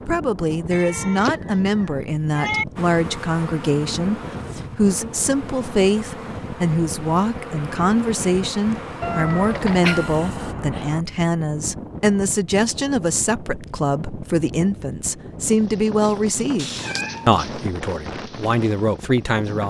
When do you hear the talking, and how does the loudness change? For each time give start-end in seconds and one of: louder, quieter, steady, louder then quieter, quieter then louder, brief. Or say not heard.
0.1-19.6 steady.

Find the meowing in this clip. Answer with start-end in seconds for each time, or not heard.
0.7-2.6, 9.0-11.1, 16.6-17.7.